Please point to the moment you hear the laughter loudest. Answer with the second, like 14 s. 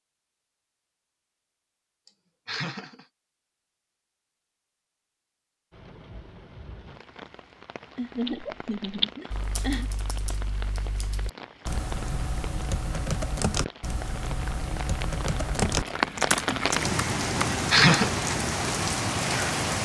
18 s.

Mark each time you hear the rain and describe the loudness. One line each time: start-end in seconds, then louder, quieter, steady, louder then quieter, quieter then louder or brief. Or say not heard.
5.7-19.7 louder.